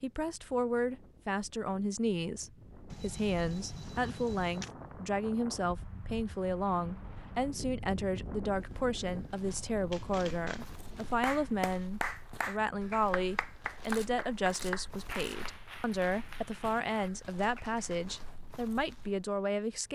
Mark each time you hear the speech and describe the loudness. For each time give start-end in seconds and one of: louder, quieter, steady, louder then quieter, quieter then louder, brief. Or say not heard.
0.0-19.8 steady.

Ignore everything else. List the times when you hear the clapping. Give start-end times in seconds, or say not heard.
11.2-18.1.